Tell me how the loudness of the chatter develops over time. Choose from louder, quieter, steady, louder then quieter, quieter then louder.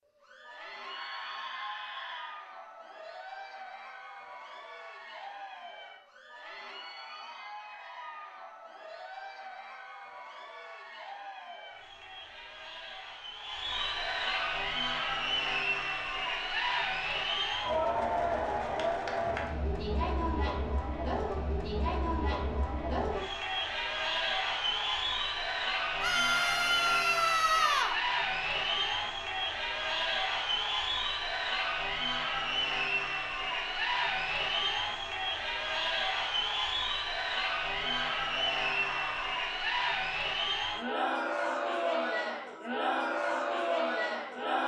louder.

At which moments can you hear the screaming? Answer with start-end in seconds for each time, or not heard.
0.8-2.4, 26.0-27.9, 37.8-39.4.